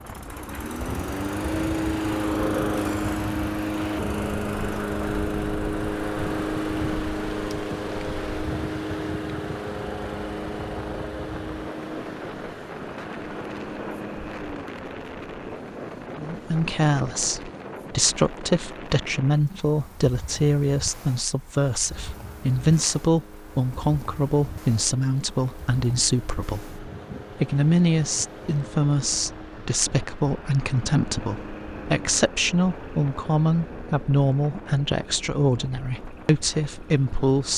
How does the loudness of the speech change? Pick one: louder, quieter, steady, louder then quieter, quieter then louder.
steady.